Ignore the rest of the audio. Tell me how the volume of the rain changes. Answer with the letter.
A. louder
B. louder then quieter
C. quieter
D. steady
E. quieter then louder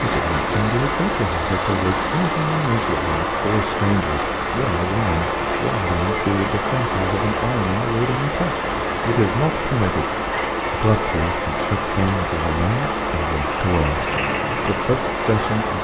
D.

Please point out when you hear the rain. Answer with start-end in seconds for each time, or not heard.
0.0-15.7.